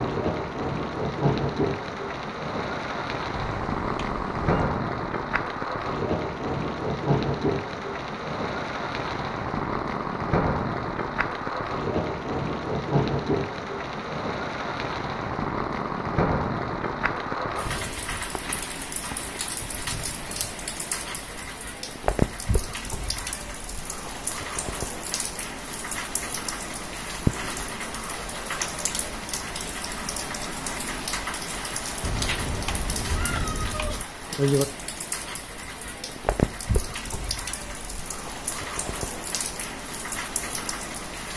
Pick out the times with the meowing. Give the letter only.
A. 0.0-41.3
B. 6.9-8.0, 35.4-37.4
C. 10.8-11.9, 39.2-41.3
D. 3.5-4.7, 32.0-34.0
D.